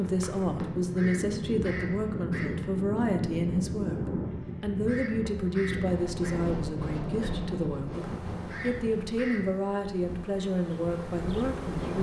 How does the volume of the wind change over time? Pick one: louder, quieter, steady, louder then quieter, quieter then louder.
quieter.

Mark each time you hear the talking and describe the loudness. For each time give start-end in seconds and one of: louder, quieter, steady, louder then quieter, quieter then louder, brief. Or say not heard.
0.0-11.9 steady.